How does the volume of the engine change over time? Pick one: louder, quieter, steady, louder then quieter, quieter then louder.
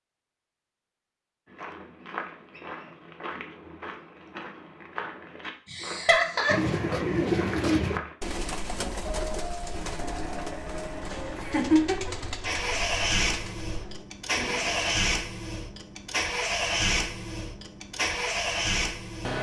louder.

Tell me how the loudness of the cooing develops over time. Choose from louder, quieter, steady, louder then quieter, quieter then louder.
quieter.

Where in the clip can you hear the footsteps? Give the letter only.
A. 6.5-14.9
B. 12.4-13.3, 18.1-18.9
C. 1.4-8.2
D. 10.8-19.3
C.